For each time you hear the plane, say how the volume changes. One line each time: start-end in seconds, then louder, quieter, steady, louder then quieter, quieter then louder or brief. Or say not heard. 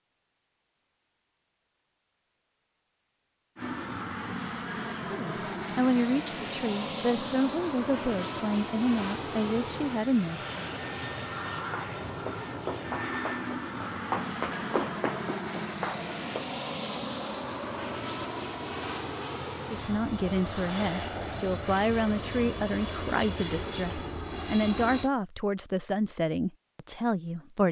3.5-25.1 steady.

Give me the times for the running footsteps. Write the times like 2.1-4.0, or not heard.
11.6-16.5.